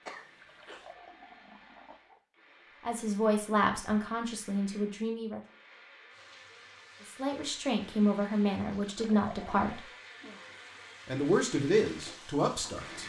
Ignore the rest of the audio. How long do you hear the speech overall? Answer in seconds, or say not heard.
7 s.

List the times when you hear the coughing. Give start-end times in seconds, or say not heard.
0.1-0.9.